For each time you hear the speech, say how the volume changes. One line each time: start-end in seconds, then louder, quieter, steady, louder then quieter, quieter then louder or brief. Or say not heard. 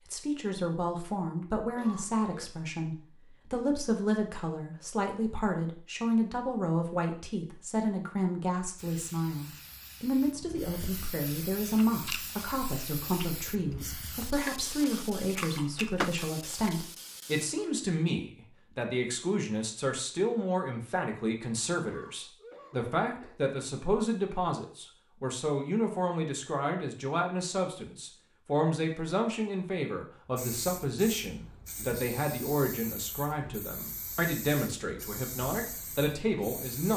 0.1-36.9 steady.